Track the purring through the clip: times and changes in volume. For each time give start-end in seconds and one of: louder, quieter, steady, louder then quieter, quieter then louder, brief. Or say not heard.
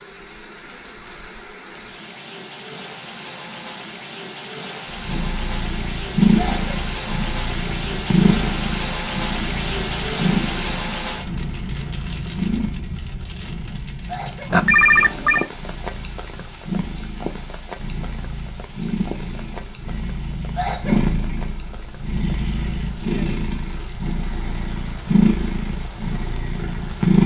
4.8-27.2 quieter then louder.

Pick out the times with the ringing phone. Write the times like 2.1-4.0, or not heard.
14.5-15.4.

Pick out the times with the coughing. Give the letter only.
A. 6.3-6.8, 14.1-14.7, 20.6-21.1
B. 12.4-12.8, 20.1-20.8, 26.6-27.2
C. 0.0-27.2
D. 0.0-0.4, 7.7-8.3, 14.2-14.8
A.